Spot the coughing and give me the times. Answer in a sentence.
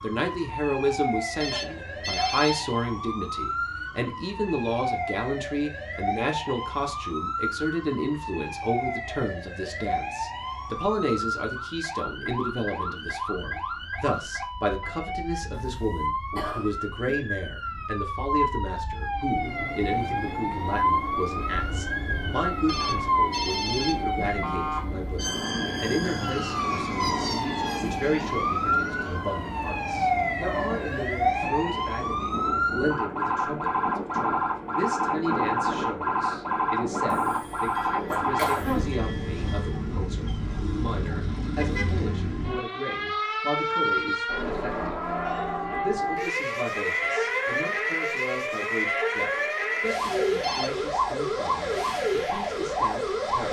You can hear the coughing from 15.7 to 17.1 s and from 37.1 to 39.0 s.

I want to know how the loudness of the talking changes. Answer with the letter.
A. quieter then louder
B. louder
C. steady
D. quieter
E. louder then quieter
D.